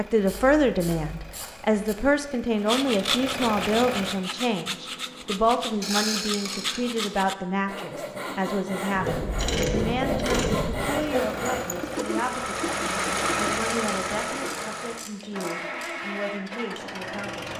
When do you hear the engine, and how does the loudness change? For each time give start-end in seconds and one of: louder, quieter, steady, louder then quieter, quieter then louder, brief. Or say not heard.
0.0-4.2 louder
10.9-17.5 louder then quieter.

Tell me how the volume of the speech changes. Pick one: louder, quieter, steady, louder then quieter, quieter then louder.
quieter.